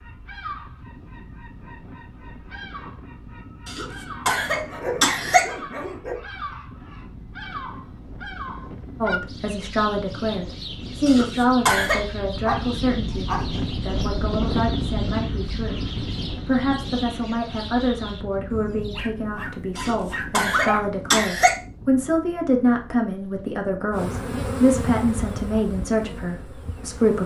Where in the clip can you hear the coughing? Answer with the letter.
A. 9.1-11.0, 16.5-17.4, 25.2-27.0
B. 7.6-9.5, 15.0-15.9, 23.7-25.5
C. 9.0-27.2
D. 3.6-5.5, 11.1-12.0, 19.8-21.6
D.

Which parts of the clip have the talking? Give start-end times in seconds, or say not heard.
9.0-27.2.